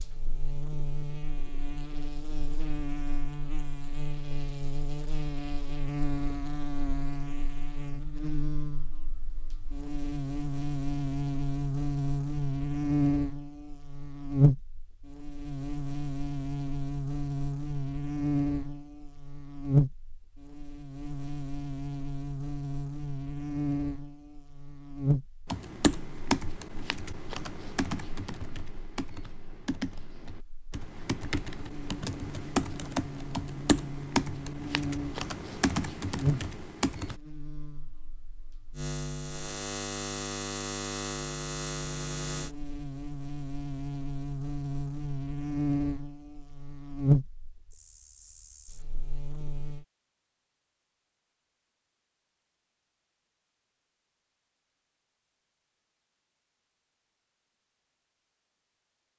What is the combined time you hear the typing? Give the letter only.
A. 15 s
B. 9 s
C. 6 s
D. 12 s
D.